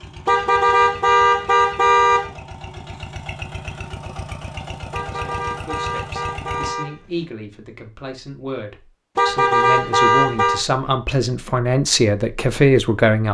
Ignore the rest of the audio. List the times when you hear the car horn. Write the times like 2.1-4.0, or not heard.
0.2-2.3, 4.9-7.2, 9.2-10.7.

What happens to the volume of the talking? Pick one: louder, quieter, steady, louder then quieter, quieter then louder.
louder.